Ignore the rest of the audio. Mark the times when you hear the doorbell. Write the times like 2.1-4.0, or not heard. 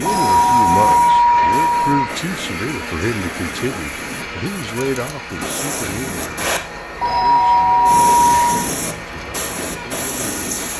0.1-2.0, 7.0-8.7.